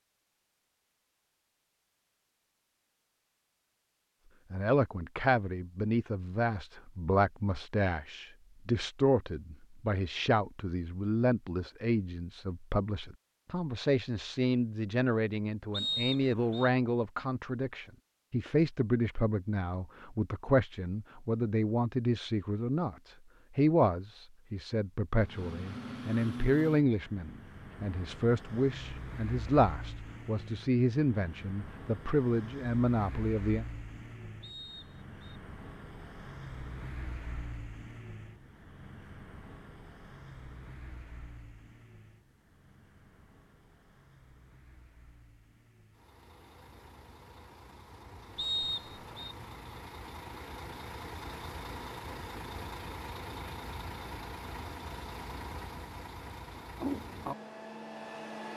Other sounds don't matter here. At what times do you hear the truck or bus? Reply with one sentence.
The truck or bus can be heard from 25.2 to 58.5 s.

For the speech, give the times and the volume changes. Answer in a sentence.
You can hear the speech from 4.5 to 33.6 s, at a steady volume.